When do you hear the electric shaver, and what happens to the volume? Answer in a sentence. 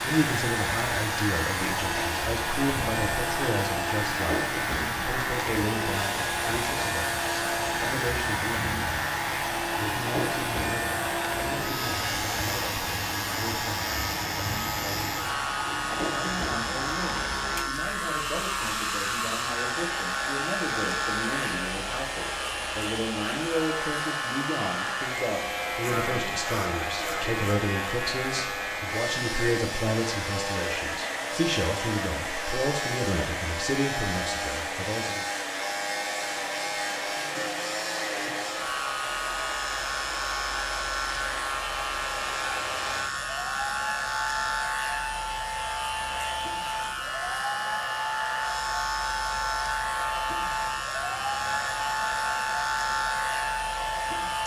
The electric shaver can be heard from 0.0 to 54.4 s, at a steady volume.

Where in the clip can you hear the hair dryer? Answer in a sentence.
You can hear the hair dryer from 0.0 to 54.4 s.